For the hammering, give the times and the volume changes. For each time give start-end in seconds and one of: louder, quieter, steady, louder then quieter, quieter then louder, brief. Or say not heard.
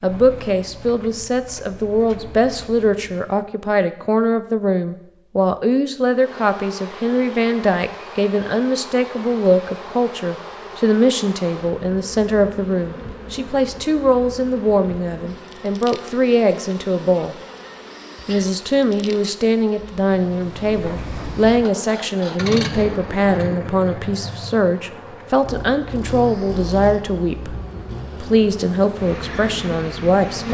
not heard.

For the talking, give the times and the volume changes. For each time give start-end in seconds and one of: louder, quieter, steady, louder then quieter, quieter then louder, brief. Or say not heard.
0.0-17.4 steady
18.2-27.6 steady
28.2-30.4 brief.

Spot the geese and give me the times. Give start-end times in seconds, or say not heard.
not heard.